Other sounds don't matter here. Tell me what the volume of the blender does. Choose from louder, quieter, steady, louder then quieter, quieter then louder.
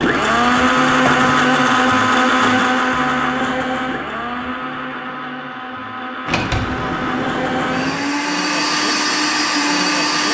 quieter then louder.